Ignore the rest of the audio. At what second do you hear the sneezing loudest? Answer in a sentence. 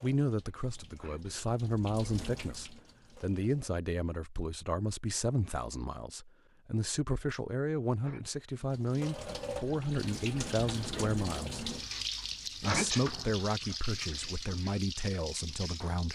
The volume of the sneezing peaks at 13 seconds.